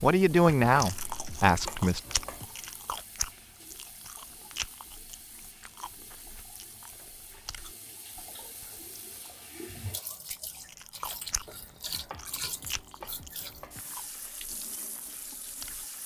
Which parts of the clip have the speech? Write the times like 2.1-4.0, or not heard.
0.0-2.0.